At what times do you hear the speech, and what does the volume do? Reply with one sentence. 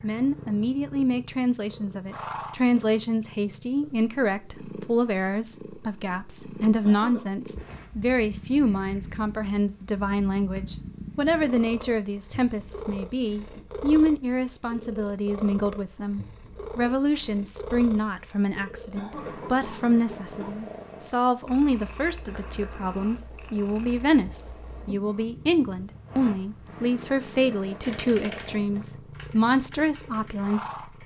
The speech can be heard from 0.0 to 30.9 s, at a steady volume.